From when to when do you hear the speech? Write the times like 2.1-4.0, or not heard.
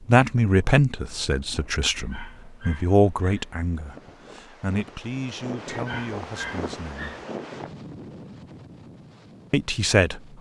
0.1-7.2, 9.5-10.2.